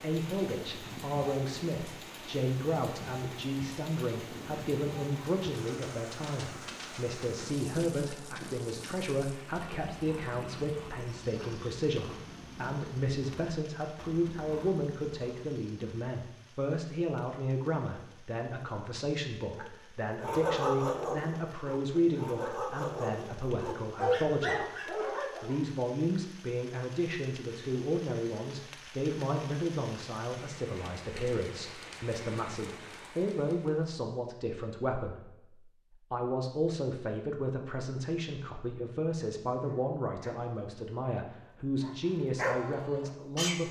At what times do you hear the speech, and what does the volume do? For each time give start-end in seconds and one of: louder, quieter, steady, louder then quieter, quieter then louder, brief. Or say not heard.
0.0-43.6 steady.